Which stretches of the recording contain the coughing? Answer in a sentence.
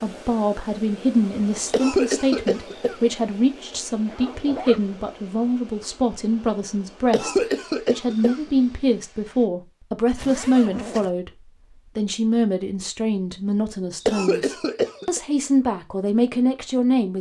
You can hear the coughing from 1.7 to 3.0 s, from 7.1 to 8.3 s and from 14.0 to 15.2 s.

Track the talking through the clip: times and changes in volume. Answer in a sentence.
You can hear the talking from 0.0 to 17.1 s, at a steady volume.